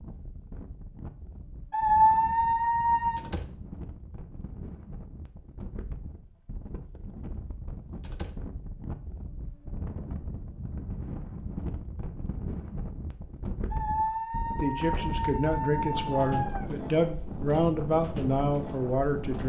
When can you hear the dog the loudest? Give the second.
2 s.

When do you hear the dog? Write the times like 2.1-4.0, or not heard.
1.7-3.2, 13.7-16.6.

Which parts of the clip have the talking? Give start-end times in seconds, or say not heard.
14.6-19.4.